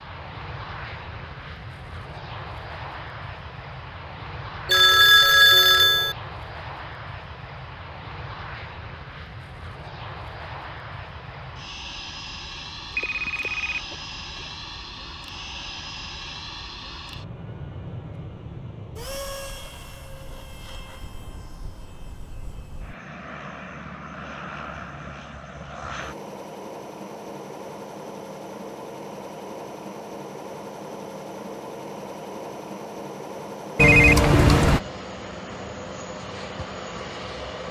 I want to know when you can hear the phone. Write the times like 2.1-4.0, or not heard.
4.7-6.2, 12.8-14.4, 33.8-34.8.